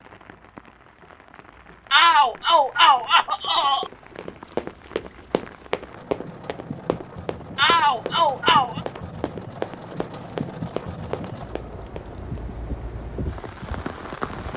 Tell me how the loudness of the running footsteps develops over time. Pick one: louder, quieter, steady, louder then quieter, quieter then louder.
steady.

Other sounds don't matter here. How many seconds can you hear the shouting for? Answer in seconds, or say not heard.
3 s.